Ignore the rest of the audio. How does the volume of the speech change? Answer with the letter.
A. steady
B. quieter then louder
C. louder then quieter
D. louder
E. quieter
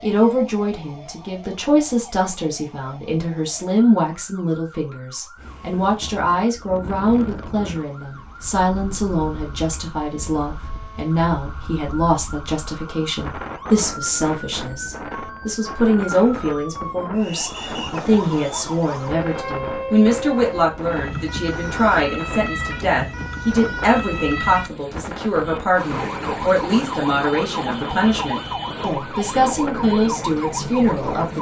A.